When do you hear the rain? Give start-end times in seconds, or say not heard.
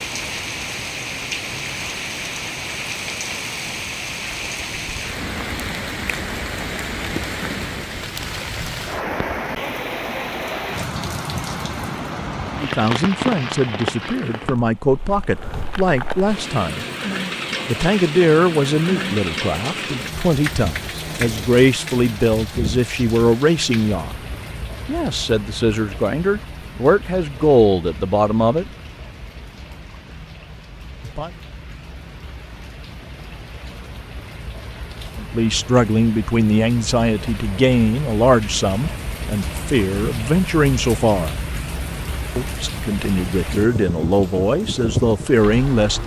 0.0-46.0.